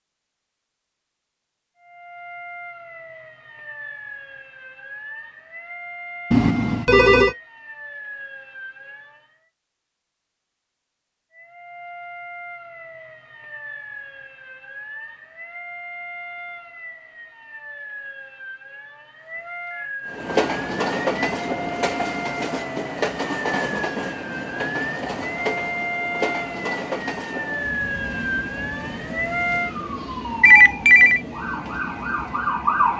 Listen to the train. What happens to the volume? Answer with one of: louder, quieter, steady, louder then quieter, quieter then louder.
quieter.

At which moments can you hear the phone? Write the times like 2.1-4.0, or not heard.
6.3-7.3, 30.4-31.2.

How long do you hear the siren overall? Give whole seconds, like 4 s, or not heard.
29 s.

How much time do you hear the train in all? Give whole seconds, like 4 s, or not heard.
13 s.